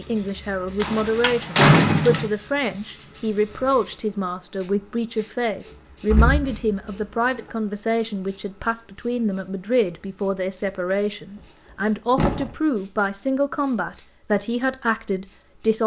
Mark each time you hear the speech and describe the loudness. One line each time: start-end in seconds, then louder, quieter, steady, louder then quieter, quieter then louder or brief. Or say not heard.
0.0-15.8 steady.